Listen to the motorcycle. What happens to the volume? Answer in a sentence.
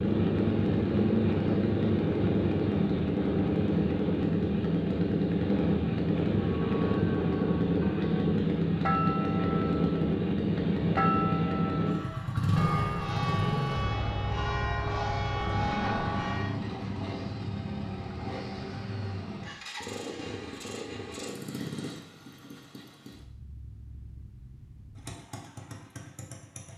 The volume of the motorcycle goes down.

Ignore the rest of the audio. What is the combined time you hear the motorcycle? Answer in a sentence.
You can hear the motorcycle for 27 seconds altogether.